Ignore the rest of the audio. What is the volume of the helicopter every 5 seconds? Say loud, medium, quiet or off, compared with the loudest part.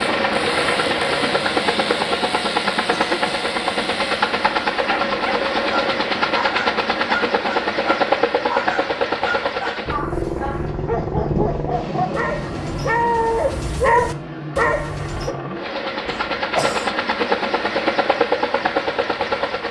loud, loud, medium, loud.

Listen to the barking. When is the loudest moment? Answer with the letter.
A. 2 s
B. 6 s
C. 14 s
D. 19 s
C.